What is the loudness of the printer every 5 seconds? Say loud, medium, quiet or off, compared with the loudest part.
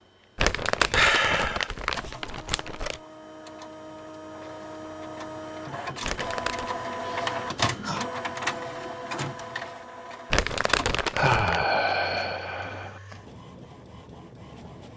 medium, loud, quiet.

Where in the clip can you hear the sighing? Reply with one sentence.
The sighing can be heard from 0.9 to 1.7 s, from 7.0 to 8.1 s and from 11.2 to 13.0 s.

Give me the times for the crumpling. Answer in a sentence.
The crumpling can be heard from 0.3 to 3.0 s, from 6.0 to 6.8 s and from 10.3 to 11.6 s.